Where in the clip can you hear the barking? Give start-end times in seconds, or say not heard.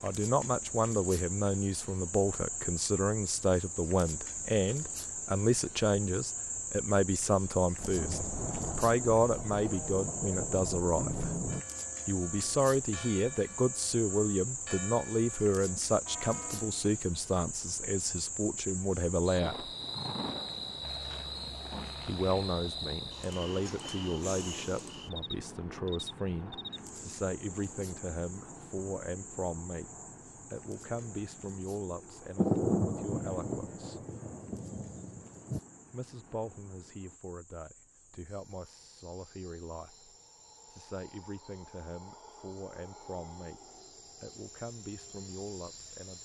not heard.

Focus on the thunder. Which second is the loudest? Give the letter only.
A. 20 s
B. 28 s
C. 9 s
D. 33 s
D.